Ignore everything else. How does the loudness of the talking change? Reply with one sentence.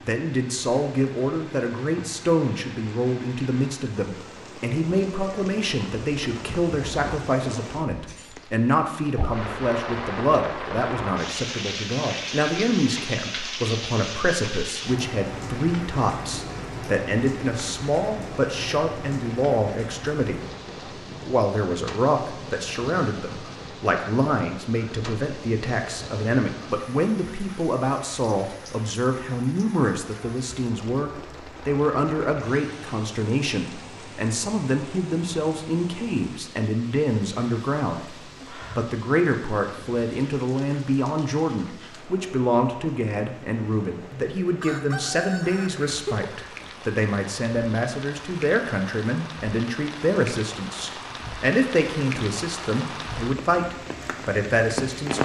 The loudness of the talking stays about the same.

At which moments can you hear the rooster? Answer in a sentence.
The rooster can be heard from 44.6 to 46.2 s.